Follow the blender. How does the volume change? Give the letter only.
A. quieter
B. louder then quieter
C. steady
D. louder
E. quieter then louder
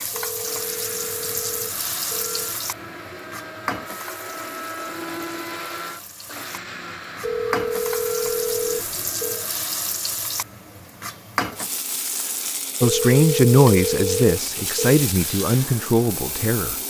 B.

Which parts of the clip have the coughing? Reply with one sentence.
The coughing can't be heard in this clip.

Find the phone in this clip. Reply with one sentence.
The phone can be heard from 0.1 to 2.5 s, from 7.2 to 9.4 s and from 12.8 to 14.8 s.